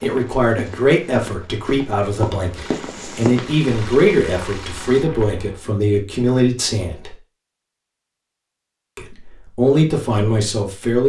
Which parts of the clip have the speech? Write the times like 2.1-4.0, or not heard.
0.0-7.2, 8.9-11.0.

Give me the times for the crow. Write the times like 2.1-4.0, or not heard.
not heard.